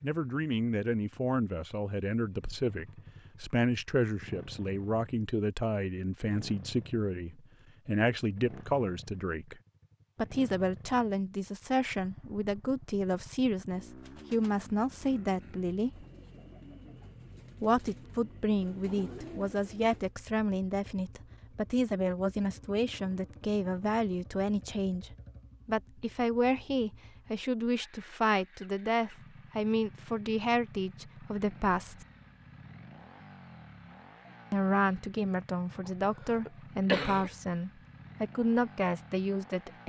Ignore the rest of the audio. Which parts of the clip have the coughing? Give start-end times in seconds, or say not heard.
35.8-37.3.